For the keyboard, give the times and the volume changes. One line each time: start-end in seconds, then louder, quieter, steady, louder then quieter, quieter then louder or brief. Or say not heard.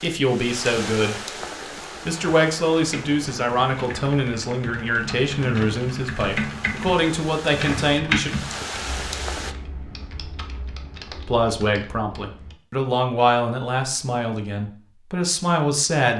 2.8-12.6 louder then quieter.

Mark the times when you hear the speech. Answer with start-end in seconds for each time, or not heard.
0.0-1.4, 2.0-8.3, 11.2-16.1.